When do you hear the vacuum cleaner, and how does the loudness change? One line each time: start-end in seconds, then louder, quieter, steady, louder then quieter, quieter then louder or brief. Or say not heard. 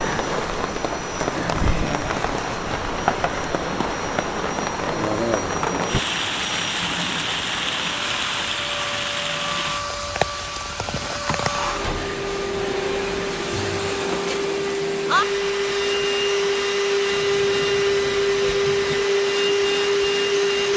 0.0-20.7 louder.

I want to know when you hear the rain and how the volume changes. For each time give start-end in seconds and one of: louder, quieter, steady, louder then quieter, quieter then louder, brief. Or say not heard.
0.0-20.7 quieter.